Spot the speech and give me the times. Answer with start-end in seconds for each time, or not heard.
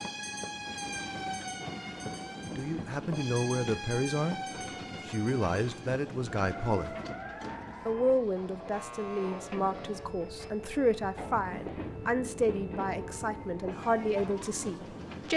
2.5-4.4, 5.0-7.0, 7.8-15.3.